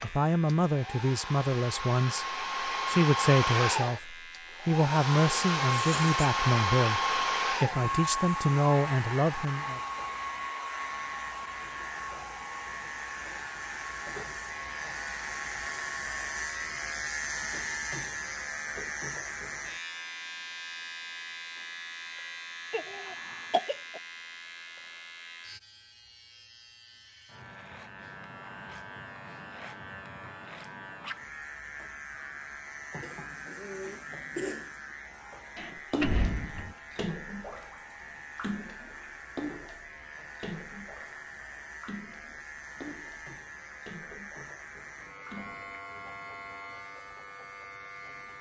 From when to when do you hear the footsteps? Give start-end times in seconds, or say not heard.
not heard.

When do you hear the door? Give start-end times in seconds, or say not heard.
35.5-36.8.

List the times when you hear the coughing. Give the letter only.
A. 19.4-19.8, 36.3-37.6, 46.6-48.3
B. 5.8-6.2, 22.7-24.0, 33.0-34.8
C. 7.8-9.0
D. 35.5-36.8
B.